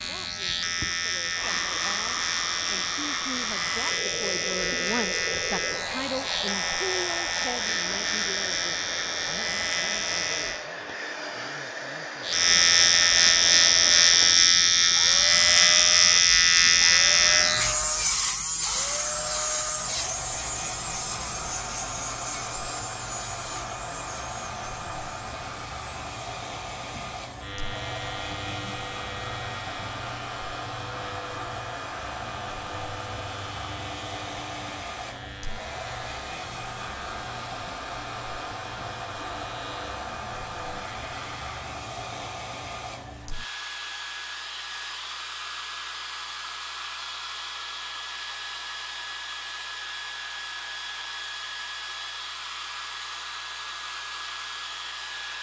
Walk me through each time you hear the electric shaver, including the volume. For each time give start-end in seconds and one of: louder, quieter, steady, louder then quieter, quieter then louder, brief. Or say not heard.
0.0-10.7 steady
12.2-41.6 quieter.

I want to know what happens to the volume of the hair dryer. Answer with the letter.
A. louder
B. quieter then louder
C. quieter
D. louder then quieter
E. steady
E.